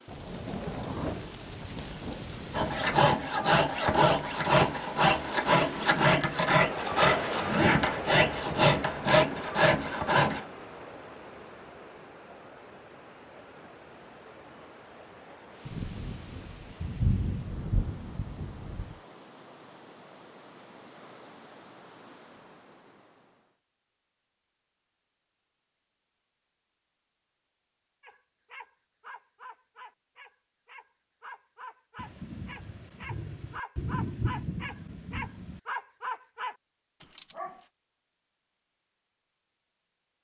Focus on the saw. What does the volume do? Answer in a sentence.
The loudness of the saw stays about the same.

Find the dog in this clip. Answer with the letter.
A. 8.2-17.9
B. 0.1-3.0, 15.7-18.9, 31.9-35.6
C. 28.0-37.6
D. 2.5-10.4
C.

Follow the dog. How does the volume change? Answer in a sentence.
The loudness of the dog goes up.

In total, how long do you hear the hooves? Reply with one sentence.
You can't hear the hooves here.